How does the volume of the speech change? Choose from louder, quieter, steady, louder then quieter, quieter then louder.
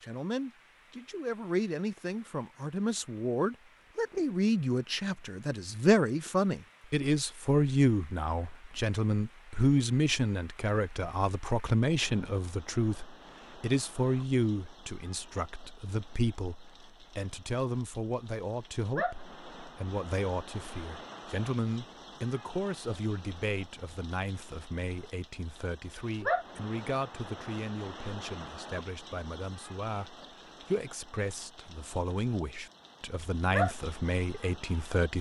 quieter.